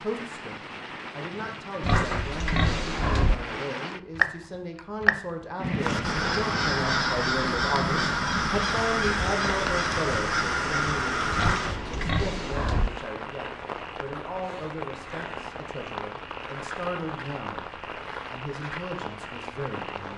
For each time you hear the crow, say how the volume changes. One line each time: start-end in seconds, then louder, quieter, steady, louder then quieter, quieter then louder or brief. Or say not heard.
5.8-11.8 steady.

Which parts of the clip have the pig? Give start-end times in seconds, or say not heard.
1.8-3.4, 11.3-12.9.